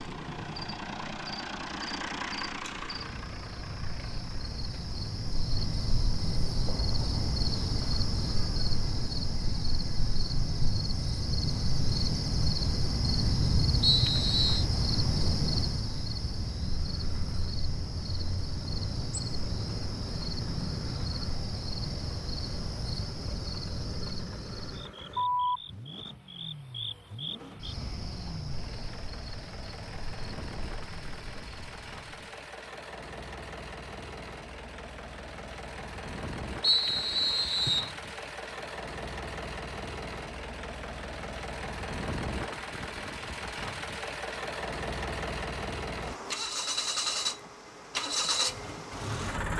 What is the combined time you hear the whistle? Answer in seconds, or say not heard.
2 s.